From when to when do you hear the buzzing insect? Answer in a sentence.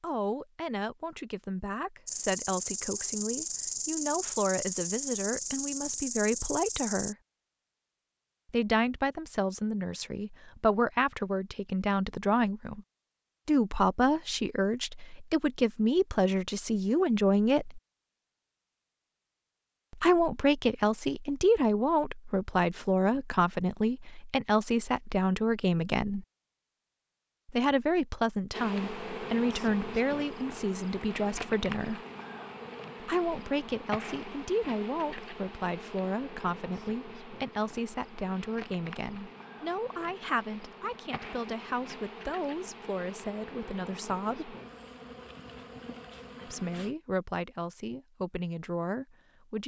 The buzzing insect can be heard from 2.0 to 7.2 s and from 28.5 to 47.0 s.